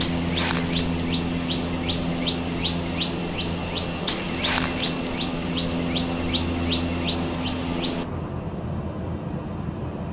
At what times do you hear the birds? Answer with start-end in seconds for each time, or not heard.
0.0-8.0.